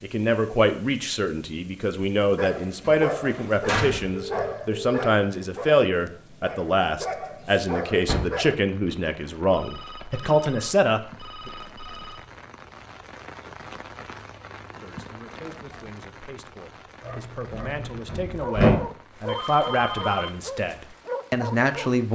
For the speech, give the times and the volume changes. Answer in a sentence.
You can hear the speech from 0.0 to 11.5 s, at a steady volume; and from 14.8 to 22.0 s, getting louder.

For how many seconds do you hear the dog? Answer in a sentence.
The dog can be heard for 11 seconds in total.